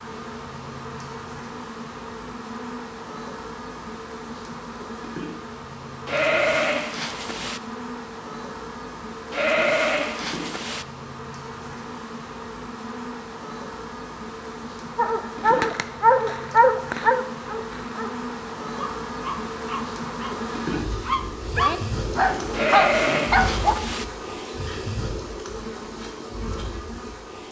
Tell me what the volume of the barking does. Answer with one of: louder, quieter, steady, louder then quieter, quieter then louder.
quieter then louder.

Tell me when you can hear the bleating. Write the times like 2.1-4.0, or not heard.
6.0-7.6, 9.3-10.8, 22.5-24.1.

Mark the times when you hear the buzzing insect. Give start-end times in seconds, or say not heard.
0.0-27.4.